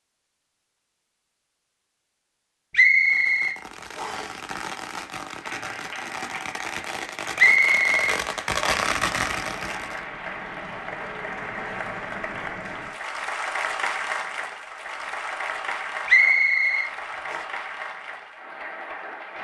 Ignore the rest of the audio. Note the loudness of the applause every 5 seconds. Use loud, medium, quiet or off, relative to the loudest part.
off, medium, loud, loud.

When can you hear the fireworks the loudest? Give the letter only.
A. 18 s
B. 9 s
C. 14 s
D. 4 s
B.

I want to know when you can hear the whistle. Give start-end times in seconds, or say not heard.
2.7-4.3, 7.3-8.8, 16.1-17.4.